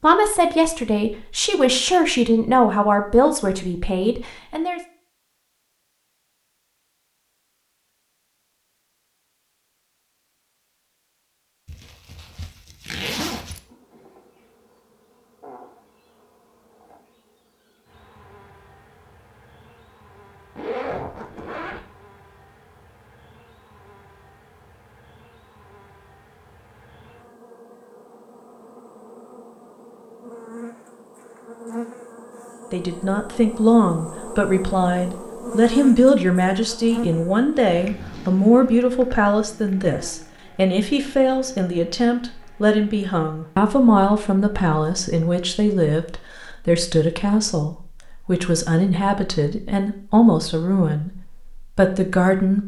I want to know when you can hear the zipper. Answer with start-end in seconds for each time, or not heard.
11.7-13.6, 20.6-21.9, 37.6-38.4.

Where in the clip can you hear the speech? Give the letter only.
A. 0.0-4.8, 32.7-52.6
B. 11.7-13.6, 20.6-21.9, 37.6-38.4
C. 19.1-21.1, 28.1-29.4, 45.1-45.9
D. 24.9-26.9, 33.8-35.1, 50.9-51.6
A.